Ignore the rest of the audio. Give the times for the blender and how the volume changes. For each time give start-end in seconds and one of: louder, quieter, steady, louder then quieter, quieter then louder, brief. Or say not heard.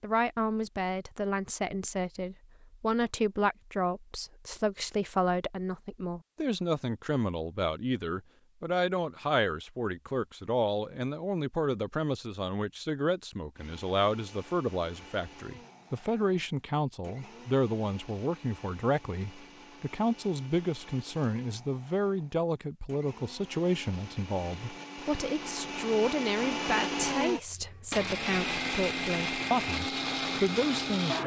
13.6-31.2 louder.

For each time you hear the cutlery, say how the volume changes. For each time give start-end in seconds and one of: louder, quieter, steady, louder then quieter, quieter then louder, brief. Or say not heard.
not heard.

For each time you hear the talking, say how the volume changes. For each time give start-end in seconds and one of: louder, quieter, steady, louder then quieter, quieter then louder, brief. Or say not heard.
0.0-31.2 steady.